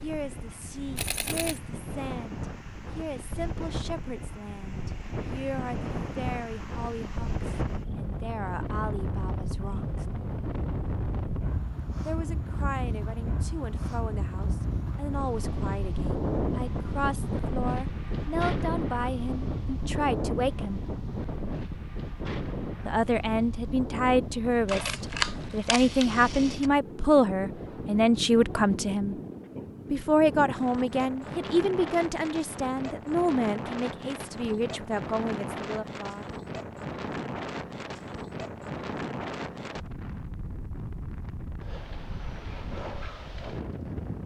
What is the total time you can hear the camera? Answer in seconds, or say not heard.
3 s.